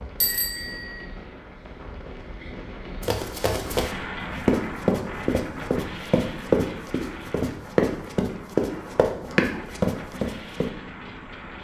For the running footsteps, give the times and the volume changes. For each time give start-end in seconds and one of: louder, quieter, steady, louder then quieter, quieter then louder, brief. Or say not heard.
3.0-10.7 steady.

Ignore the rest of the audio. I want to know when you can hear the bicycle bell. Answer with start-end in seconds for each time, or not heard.
0.2-1.0.